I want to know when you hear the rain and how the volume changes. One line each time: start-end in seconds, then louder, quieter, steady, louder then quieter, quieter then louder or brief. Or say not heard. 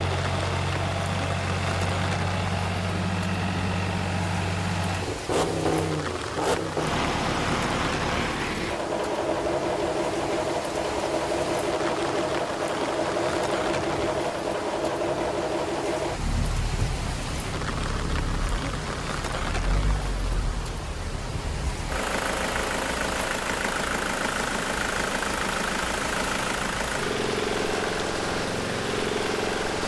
0.0-29.8 steady.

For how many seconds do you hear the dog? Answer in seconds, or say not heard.
not heard.